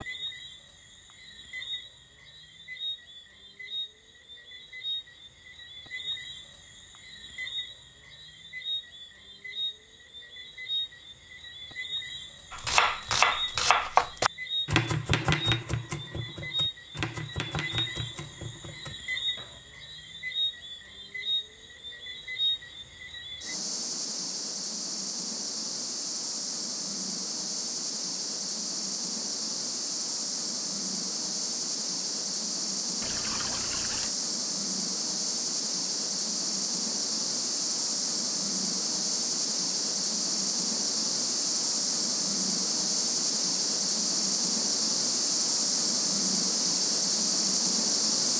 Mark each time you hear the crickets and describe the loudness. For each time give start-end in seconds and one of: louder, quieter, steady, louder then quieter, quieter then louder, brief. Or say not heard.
0.0-48.3 louder.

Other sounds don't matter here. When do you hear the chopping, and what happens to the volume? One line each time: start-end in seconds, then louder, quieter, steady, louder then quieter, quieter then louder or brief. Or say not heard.
12.5-19.6 quieter.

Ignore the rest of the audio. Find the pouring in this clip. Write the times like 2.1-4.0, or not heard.
33.0-34.1.